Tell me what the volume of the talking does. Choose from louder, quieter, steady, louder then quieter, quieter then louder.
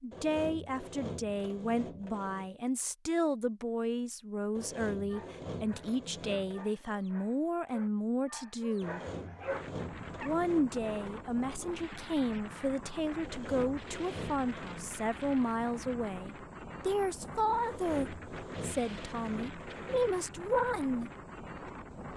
steady.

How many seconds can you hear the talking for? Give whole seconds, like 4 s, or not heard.
20 s.